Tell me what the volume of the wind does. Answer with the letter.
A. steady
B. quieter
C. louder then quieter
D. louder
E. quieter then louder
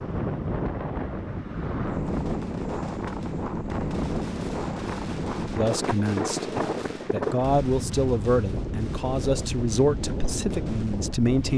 A.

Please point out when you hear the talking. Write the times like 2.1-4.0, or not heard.
5.5-11.5.